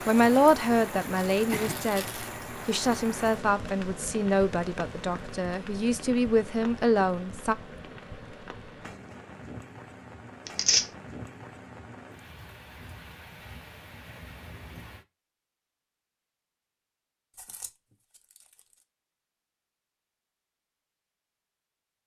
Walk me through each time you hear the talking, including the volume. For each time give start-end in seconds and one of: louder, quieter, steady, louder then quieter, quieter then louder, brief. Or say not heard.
0.1-7.5 quieter then louder.